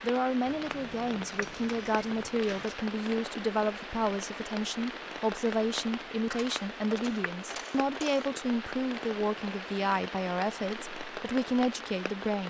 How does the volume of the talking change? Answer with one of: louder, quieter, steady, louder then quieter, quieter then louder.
steady.